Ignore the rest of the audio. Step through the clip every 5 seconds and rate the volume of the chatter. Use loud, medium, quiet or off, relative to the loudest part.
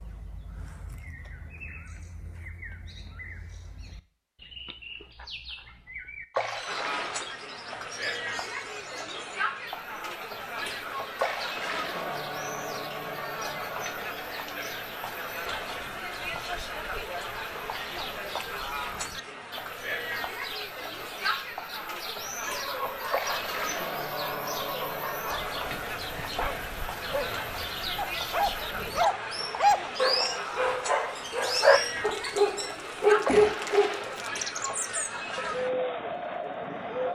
off, loud, loud, loud, loud, loud, loud, loud.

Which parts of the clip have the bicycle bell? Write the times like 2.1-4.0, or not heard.
not heard.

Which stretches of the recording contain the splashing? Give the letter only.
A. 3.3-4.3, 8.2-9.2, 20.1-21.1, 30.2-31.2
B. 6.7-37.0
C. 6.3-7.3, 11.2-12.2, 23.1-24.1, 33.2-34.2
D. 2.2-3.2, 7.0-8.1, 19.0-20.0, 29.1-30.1
C.